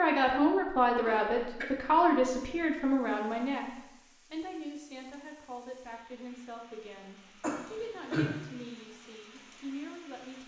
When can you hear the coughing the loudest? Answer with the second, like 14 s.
8 s.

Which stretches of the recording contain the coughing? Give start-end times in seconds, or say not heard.
1.1-1.6, 7.4-8.4.